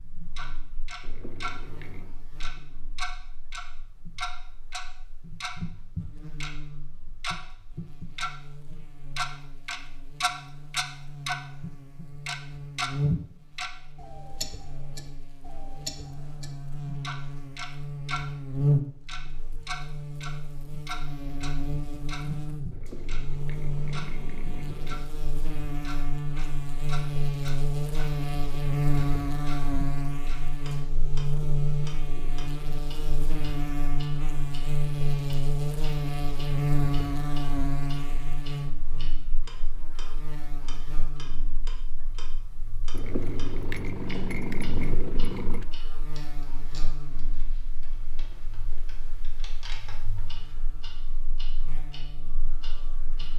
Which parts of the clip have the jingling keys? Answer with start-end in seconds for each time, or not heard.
1.0-2.1, 22.7-25.1, 42.9-45.6.